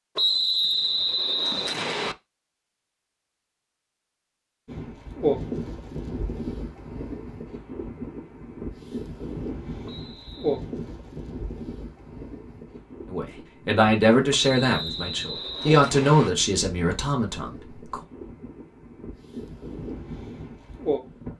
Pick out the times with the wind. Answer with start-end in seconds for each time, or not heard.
4.7-21.3.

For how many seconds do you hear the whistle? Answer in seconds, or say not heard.
5 s.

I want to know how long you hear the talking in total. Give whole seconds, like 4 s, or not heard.
5 s.